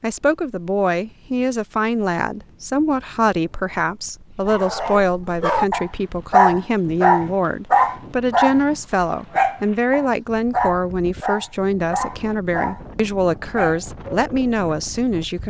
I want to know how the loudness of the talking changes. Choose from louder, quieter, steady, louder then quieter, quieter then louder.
steady.